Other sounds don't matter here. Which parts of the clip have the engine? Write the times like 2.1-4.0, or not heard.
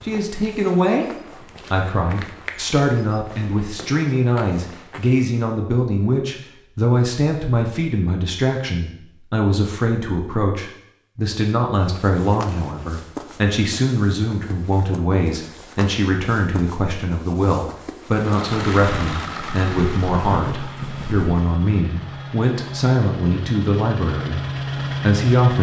18.1-25.5.